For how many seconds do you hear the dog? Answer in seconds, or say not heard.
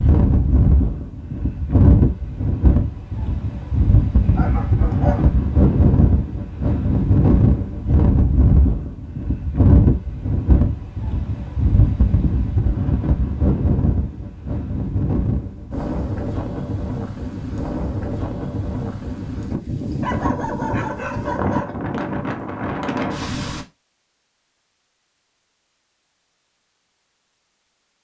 3 s.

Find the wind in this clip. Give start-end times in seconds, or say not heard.
0.0-23.6.